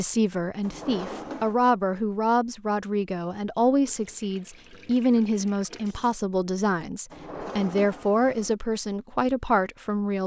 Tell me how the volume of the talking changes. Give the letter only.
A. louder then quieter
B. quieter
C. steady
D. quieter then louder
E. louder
C.